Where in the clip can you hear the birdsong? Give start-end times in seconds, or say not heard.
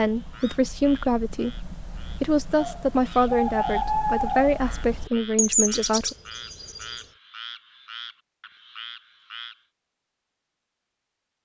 0.0-7.0.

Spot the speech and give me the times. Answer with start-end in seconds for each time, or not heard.
0.0-6.2.